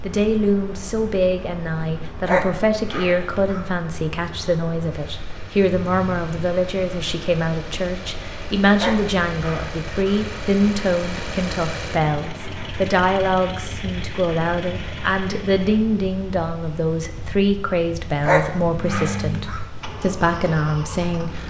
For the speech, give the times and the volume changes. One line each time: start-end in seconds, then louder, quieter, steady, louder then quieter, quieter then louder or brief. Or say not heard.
0.0-21.4 steady.